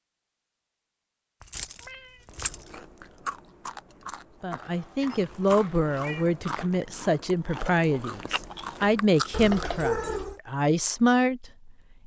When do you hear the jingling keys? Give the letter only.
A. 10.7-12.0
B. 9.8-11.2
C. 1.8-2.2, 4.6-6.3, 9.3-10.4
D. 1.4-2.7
D.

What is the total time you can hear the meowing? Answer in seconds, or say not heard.
3 s.